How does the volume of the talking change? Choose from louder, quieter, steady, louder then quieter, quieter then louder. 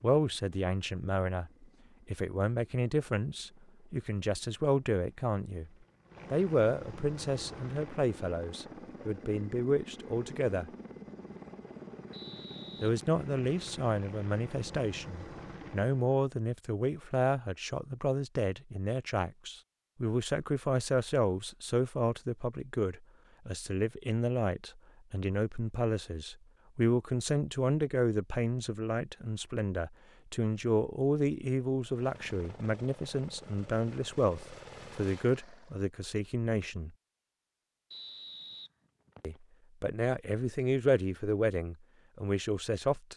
steady.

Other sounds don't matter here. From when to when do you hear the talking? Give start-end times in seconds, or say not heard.
0.0-5.7, 6.3-10.7, 12.8-36.9, 39.2-43.1.